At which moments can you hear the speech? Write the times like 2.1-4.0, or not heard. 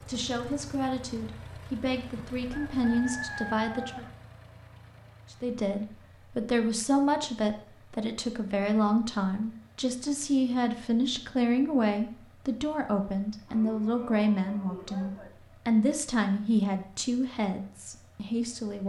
0.1-4.0, 5.3-18.8.